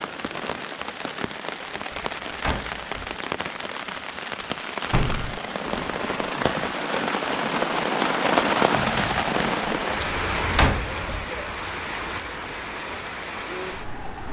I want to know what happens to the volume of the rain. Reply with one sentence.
The loudness of the rain goes up, then down.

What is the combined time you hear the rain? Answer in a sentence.
You can hear the rain for 14 seconds altogether.